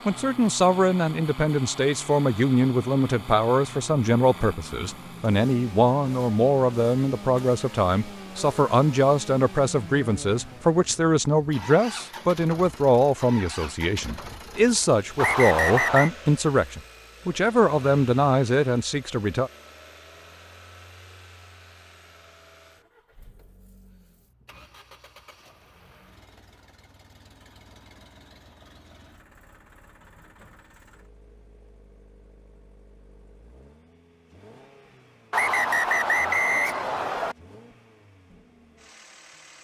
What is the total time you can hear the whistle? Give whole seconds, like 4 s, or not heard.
3 s.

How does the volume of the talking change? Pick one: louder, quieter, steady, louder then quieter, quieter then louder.
steady.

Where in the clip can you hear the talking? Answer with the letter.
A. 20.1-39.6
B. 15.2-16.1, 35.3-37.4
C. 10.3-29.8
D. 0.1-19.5
D.